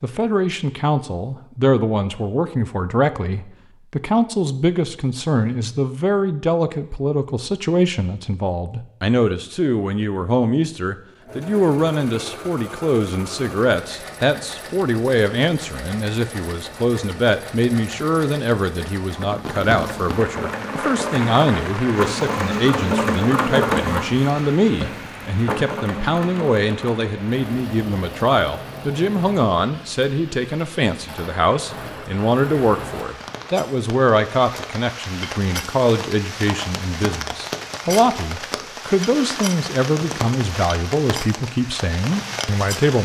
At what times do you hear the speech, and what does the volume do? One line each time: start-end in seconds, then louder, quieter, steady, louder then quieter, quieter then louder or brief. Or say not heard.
0.0-42.9 steady.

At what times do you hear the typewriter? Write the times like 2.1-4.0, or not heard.
not heard.